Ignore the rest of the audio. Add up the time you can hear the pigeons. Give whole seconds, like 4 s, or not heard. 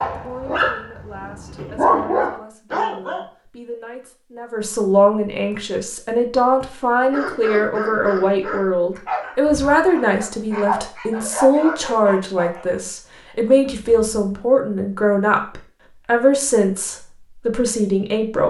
not heard.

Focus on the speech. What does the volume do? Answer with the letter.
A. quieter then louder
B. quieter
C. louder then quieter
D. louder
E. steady
D.